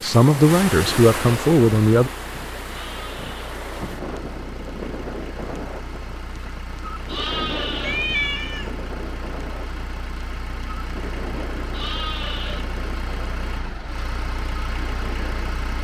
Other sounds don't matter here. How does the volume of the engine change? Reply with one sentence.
The loudness of the engine goes up.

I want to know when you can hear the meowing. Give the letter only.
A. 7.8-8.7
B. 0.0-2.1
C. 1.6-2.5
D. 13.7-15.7
A.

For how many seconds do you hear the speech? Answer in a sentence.
You can hear the speech for 2 seconds altogether.